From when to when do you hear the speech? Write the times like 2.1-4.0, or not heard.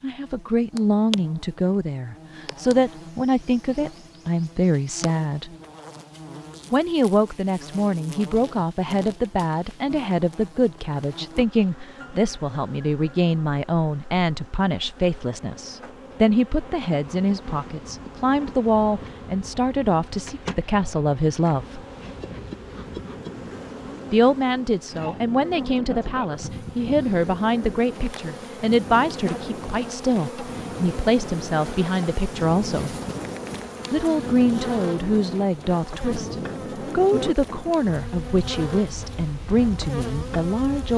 0.0-5.5, 6.7-21.8, 24.1-33.0, 33.9-40.9.